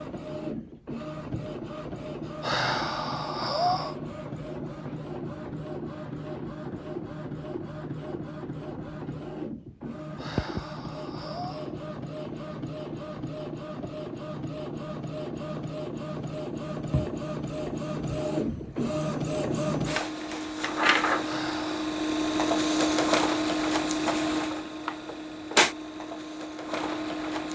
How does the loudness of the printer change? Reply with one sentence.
The loudness of the printer goes up.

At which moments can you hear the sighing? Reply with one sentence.
You can hear the sighing from 2.4 to 4.0 s, from 10.2 to 11.8 s and from 21.2 to 21.9 s.